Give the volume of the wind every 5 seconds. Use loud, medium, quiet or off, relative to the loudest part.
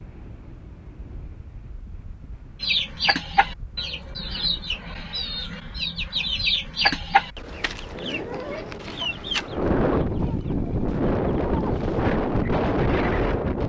quiet, medium, loud.